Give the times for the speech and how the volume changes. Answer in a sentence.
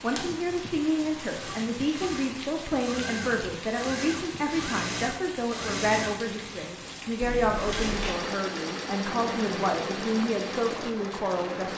You can hear the speech from 0.0 to 11.7 s, at a steady volume.